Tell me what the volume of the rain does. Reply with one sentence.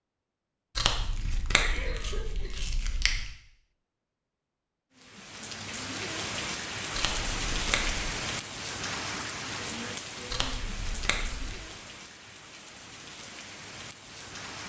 The loudness of the rain goes down.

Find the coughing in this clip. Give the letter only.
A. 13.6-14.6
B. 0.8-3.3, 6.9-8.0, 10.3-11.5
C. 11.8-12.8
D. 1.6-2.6
D.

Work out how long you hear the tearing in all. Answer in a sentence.
The tearing can be heard for 5 seconds in total.